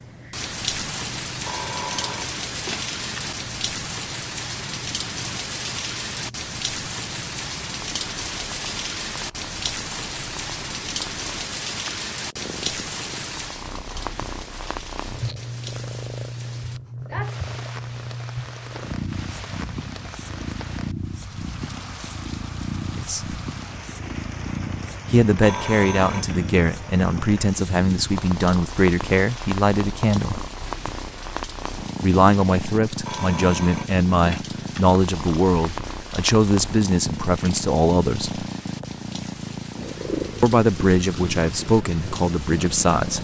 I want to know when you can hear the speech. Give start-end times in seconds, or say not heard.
22.9-23.4, 25.1-30.4, 32.0-38.5, 40.4-43.2.